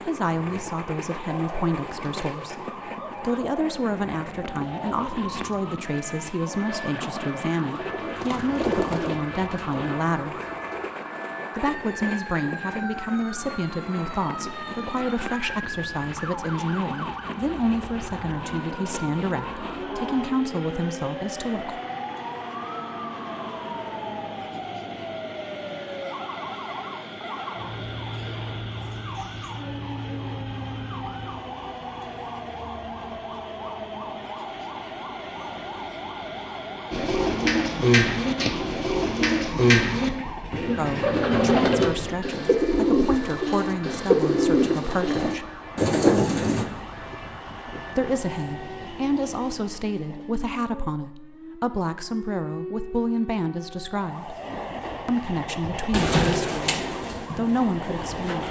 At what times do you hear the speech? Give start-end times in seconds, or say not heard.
0.1-10.4, 11.6-21.8, 40.8-45.5, 48.0-54.4, 55.0-58.4.